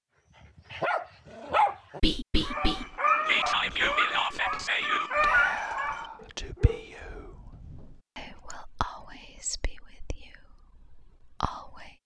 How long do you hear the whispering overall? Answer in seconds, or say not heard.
10 s.